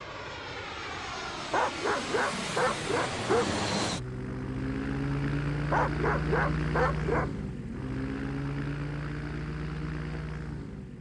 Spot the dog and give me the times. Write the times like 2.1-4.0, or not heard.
1.5-3.5, 5.7-7.3.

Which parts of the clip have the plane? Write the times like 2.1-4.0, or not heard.
0.0-10.9.